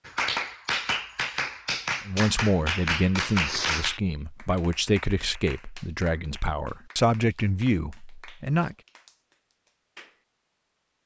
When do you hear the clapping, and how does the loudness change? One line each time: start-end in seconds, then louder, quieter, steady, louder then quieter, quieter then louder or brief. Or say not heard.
0.1-10.2 quieter.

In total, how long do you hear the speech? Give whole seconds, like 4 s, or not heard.
7 s.